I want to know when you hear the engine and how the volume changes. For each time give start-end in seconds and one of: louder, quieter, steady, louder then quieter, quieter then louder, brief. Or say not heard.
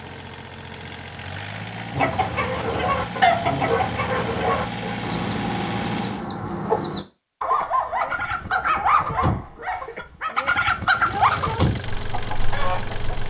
0.0-6.2 louder
10.9-13.2 brief.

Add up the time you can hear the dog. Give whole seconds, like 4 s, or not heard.
5 s.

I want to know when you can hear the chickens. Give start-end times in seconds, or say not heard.
1.9-13.2.